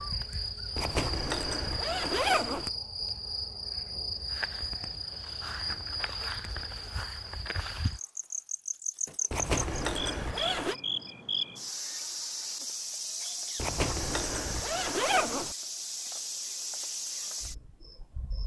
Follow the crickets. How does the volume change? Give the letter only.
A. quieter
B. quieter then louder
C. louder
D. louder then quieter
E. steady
E.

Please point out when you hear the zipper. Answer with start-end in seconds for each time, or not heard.
0.8-2.7, 9.3-10.8, 13.6-15.6.